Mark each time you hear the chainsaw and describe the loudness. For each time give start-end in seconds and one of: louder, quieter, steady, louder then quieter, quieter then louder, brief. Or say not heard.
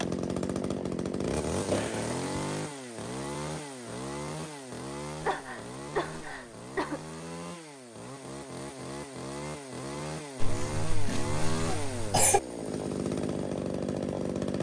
0.0-14.5 quieter then louder.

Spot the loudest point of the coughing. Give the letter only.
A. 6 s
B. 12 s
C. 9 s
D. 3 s
B.